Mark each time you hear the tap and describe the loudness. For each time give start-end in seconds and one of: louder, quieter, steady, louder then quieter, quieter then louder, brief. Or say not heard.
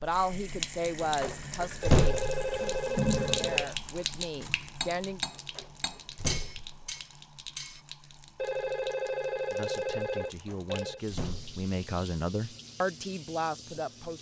0.0-14.1 quieter.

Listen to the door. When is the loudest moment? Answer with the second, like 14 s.
2 s.